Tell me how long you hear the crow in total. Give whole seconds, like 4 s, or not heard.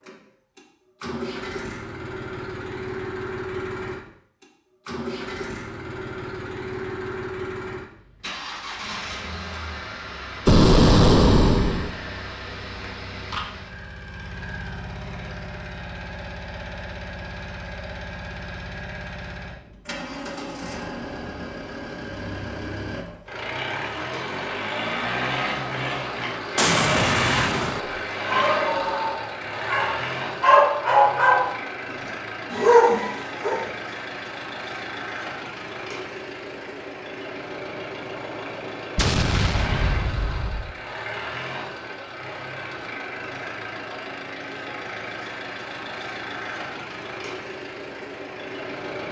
not heard.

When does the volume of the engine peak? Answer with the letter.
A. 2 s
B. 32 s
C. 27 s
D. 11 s
C.